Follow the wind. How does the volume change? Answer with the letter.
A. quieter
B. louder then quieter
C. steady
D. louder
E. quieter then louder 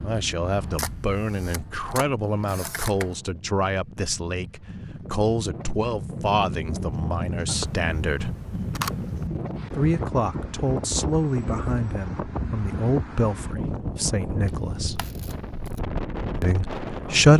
D.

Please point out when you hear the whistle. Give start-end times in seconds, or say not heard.
not heard.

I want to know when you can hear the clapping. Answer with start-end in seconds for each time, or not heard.
not heard.